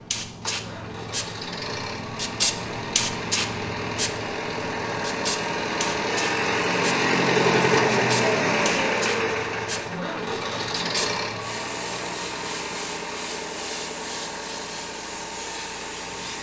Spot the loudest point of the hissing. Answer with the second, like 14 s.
3 s.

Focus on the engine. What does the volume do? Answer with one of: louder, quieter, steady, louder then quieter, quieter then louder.
louder then quieter.